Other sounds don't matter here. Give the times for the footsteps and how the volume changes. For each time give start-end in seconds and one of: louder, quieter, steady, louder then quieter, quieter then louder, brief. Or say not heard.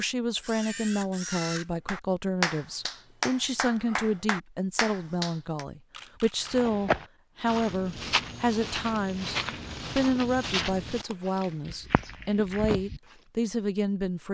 6.5-13.0 quieter.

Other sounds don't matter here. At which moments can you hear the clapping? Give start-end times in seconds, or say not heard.
1.9-5.7.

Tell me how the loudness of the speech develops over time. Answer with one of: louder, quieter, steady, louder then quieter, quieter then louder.
steady.